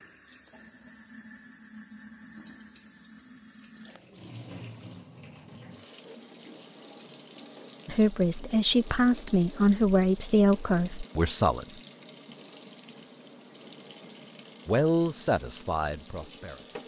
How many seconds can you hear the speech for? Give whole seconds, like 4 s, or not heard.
6 s.